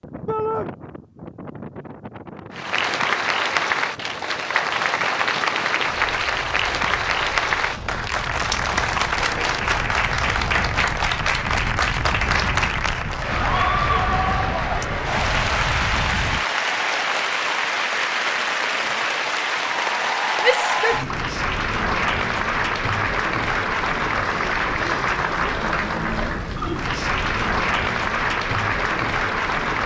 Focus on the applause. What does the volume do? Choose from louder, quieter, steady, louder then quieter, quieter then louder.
steady.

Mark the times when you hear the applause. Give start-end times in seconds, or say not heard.
2.5-29.8.